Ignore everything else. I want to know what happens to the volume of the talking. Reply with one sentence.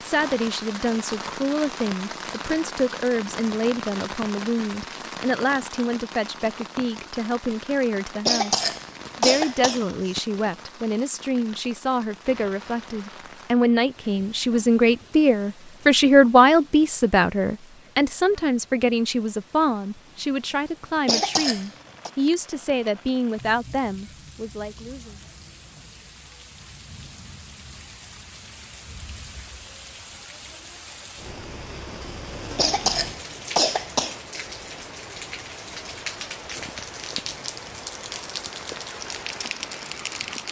The volume of the talking goes up, then down.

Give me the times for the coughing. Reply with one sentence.
The coughing can be heard from 8.2 to 10.2 s, from 21.1 to 22.1 s and from 32.5 to 34.1 s.